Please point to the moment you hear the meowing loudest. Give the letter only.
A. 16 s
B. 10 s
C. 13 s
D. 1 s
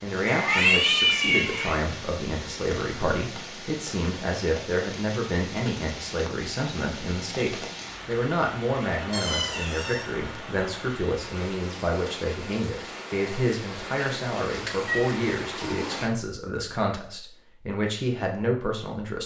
D.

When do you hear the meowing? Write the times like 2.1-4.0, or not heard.
0.2-1.8, 9.1-10.1, 14.8-16.0.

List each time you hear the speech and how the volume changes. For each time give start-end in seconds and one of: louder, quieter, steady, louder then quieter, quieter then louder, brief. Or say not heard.
0.0-19.2 steady.